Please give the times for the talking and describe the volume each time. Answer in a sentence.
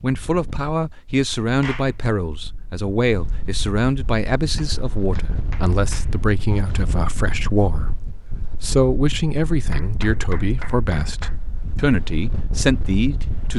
You can hear the talking from 0.0 to 13.5 s, at a steady volume.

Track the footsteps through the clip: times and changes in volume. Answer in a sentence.
You can't hear the footsteps here.